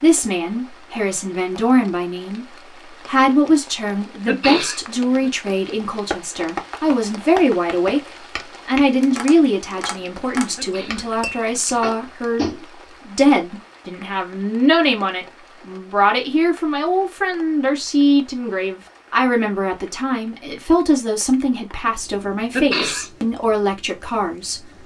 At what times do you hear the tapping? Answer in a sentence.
You can hear the tapping from 5.8 to 12.7 s.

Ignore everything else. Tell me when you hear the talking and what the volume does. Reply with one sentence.
You can hear the talking from 0.0 to 24.8 s, at a steady volume.